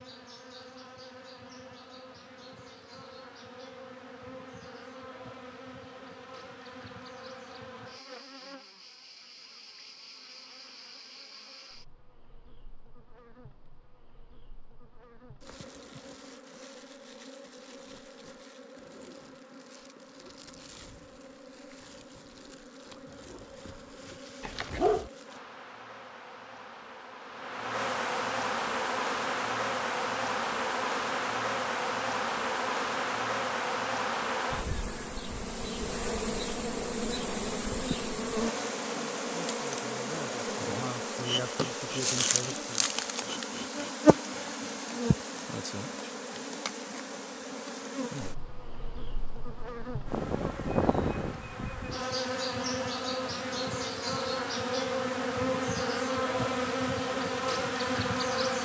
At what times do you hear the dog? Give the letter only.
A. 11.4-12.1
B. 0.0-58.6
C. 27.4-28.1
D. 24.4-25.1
D.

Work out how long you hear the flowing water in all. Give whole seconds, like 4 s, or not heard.
not heard.